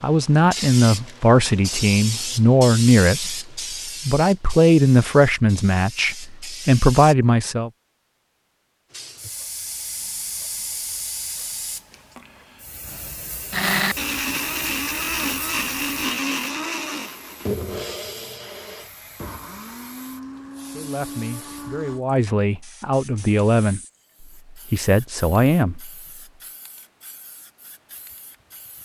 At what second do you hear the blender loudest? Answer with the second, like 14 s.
14 s.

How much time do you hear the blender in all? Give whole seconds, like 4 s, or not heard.
9 s.